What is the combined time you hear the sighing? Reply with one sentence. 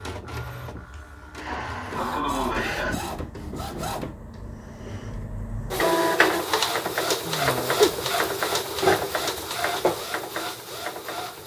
The sighing can be heard for 3 seconds in total.